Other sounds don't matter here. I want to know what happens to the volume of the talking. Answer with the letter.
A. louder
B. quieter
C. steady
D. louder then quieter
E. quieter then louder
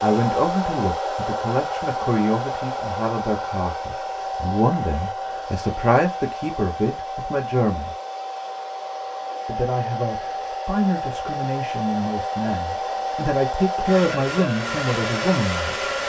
C.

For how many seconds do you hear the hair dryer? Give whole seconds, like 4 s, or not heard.
16 s.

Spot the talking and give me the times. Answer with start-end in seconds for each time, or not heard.
0.0-8.0, 9.4-15.9.